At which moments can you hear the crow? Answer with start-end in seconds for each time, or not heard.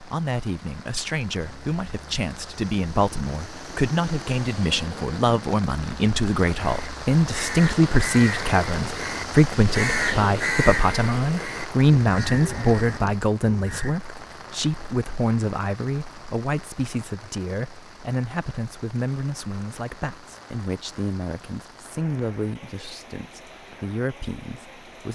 6.7-13.9.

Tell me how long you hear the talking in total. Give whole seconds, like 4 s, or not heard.
25 s.